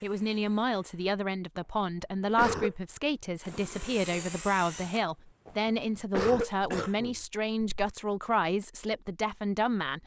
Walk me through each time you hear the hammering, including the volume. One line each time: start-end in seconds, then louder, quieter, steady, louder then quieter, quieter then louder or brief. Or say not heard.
not heard.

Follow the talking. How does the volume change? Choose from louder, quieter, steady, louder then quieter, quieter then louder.
steady.